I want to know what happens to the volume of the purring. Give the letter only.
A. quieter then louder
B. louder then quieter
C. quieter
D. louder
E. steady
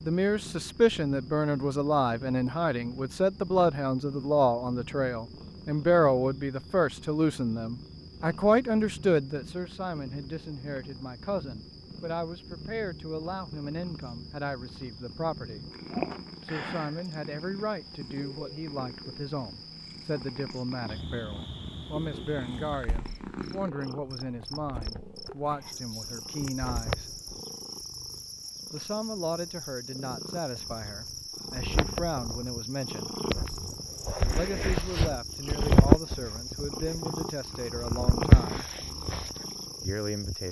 D.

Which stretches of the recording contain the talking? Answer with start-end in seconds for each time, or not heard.
0.1-15.7, 16.4-27.1, 28.7-33.1, 34.3-38.6, 39.8-40.4.